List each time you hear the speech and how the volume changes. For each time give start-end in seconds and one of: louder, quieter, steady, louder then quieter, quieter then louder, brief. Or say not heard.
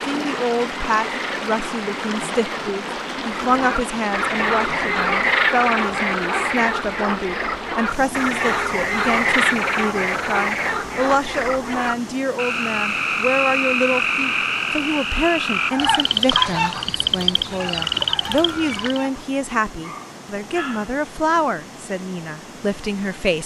0.1-23.4 steady.